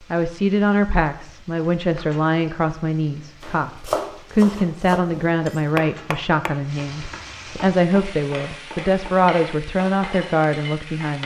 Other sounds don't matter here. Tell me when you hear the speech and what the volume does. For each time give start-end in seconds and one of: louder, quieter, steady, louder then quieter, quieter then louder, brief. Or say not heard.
0.1-11.2 steady.